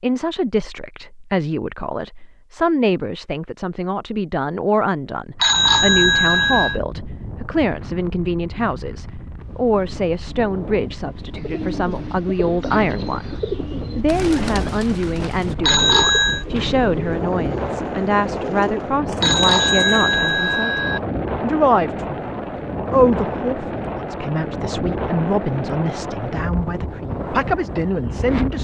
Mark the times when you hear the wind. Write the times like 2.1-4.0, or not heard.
5.3-28.5.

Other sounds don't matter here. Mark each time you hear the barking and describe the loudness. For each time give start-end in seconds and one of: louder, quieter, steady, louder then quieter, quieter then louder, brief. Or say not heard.
not heard.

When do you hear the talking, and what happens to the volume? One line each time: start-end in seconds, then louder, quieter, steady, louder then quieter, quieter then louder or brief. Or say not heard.
0.0-28.5 steady.